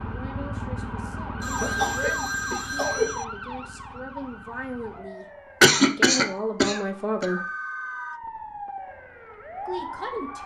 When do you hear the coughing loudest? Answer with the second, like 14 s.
6 s.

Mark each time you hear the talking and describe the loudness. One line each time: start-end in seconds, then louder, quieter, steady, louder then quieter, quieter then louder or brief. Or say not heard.
0.0-7.4 louder
9.7-10.4 brief.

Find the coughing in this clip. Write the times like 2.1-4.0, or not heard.
1.6-3.2, 5.6-7.2.